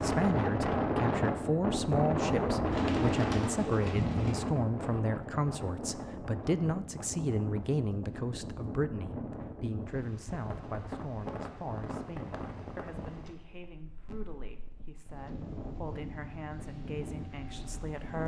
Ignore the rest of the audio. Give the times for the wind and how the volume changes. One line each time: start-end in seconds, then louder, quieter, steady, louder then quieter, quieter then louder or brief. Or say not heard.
0.0-18.2 quieter.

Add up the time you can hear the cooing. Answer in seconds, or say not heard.
2 s.